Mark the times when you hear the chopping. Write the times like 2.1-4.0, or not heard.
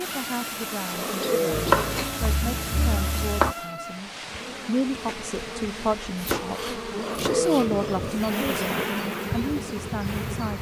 1.5-3.5, 6.2-7.8.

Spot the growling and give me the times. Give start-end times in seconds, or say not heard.
0.9-2.0, 7.0-8.3.